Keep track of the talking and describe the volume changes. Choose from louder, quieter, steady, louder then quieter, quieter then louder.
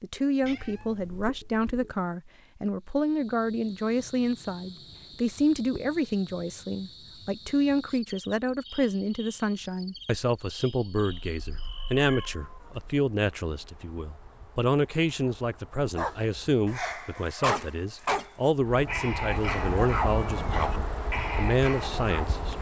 steady.